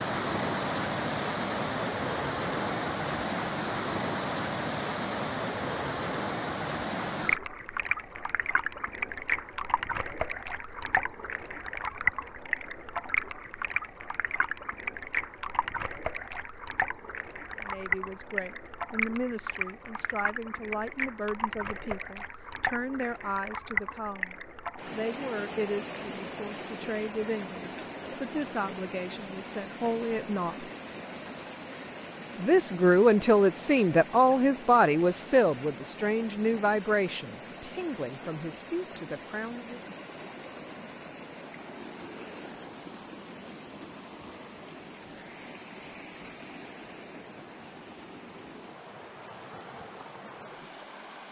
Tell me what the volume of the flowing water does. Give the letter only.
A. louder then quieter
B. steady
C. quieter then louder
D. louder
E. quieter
E.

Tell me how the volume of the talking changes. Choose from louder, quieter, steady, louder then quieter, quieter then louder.
louder then quieter.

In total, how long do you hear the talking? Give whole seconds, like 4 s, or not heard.
21 s.